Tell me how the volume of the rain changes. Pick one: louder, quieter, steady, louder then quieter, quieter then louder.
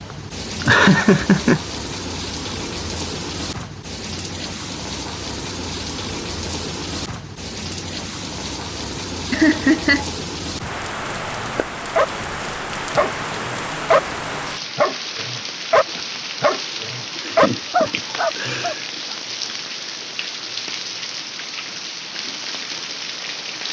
steady.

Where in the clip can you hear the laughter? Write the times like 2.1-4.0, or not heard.
0.6-1.6, 9.3-10.1, 17.1-18.9.